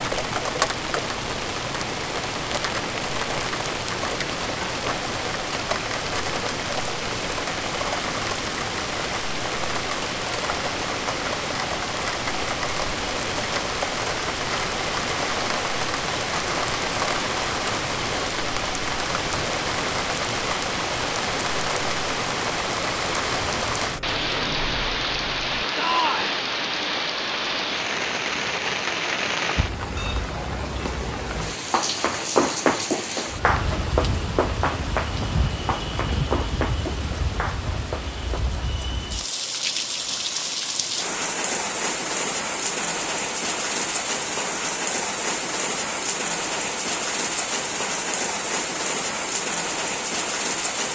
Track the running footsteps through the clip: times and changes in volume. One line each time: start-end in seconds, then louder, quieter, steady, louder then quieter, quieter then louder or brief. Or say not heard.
31.4-38.6 quieter.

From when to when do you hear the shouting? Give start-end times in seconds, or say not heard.
25.8-26.4.